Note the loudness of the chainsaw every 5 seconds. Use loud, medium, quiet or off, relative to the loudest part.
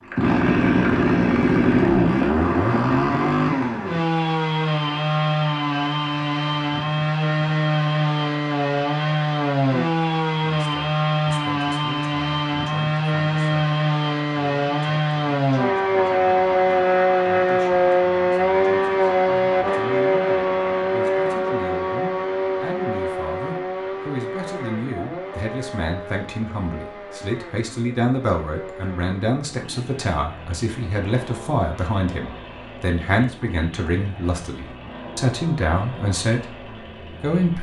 loud, loud, loud, loud, medium, quiet, quiet, quiet.